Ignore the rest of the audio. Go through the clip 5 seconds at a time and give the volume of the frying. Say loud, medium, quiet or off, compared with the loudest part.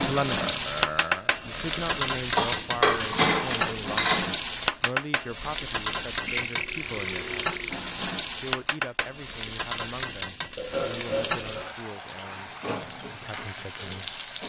loud, loud, medium.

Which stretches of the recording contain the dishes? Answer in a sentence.
You can hear the dishes from 2.4 to 4.3 s.